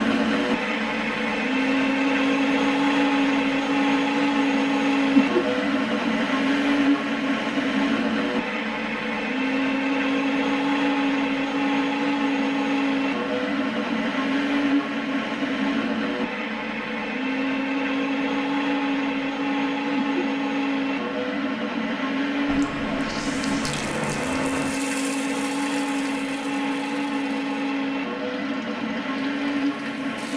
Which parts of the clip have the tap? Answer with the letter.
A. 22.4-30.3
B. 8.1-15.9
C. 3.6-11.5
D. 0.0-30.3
A.